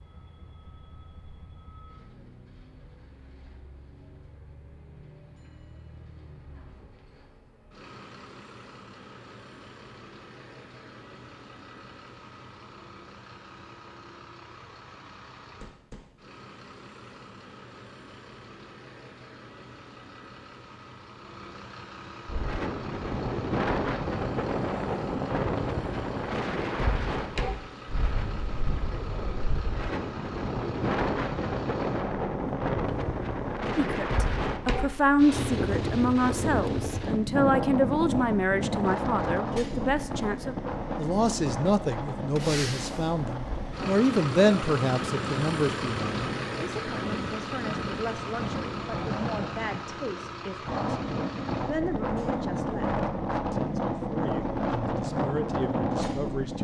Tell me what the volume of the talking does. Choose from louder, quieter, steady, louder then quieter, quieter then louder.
quieter.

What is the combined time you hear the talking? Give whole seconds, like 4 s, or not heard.
22 s.